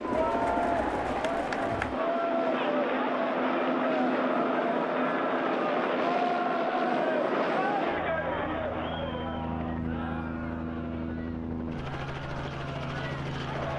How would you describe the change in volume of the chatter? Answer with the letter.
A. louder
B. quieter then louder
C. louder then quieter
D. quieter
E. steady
D.